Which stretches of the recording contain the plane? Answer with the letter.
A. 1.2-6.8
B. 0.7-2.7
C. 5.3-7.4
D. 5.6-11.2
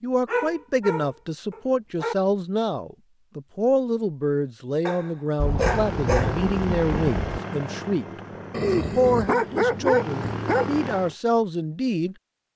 D.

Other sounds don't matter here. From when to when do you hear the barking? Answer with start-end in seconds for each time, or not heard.
0.2-2.1, 4.8-6.5, 8.5-10.7.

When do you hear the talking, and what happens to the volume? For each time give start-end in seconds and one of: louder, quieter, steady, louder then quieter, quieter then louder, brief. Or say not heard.
0.0-12.2 steady.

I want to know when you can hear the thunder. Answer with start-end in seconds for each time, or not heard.
5.3-7.4.